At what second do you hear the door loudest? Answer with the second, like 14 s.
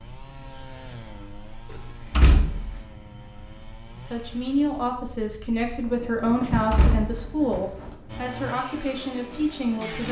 2 s.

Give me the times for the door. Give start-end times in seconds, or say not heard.
1.7-2.8, 6.2-7.6.